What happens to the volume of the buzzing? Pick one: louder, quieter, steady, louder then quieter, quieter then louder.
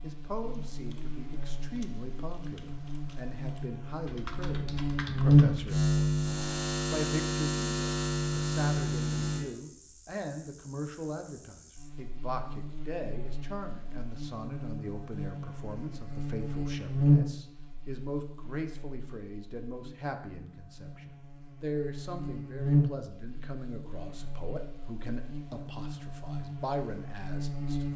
quieter then louder.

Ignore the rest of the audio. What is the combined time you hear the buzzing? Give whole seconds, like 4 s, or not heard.
28 s.